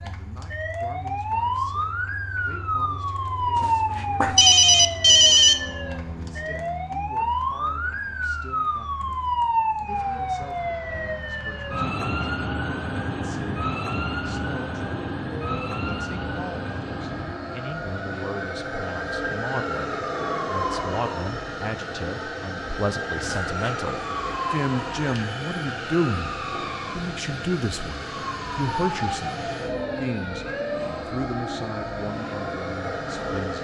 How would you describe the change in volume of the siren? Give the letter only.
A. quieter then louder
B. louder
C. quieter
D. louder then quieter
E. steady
C.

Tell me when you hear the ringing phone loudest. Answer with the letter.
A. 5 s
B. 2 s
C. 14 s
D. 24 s
A.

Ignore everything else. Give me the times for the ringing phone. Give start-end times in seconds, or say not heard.
3.5-5.5, 23.2-23.9.